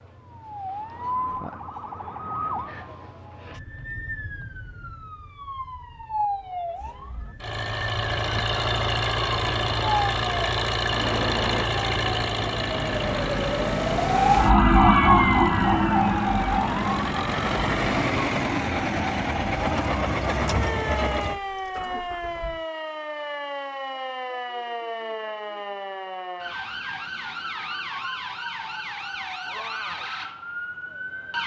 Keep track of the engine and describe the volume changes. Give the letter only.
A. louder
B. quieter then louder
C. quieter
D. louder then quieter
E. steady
B.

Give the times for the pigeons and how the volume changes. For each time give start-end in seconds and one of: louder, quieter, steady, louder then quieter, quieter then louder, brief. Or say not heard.
not heard.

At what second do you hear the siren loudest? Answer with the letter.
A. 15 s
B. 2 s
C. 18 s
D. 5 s
A.